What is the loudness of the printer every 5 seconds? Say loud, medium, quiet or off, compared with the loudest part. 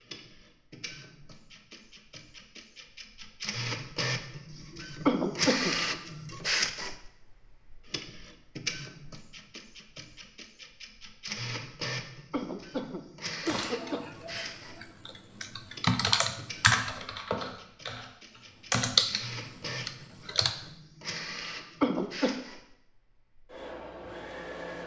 medium, loud, medium, medium, medium.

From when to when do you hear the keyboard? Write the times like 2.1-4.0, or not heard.
13.4-20.6.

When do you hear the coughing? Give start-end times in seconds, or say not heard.
5.0-5.8, 12.3-14.0, 21.8-22.3.